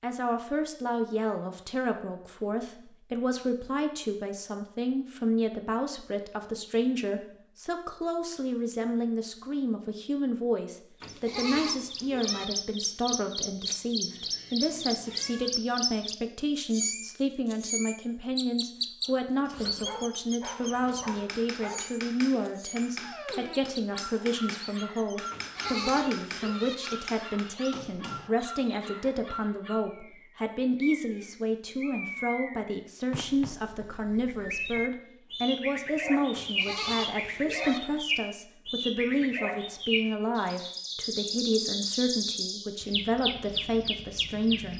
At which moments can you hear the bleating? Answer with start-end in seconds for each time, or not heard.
11.0-12.4, 25.3-26.8, 36.3-37.8.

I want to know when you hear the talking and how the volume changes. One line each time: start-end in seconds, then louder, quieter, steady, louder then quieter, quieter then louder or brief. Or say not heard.
0.0-44.7 steady.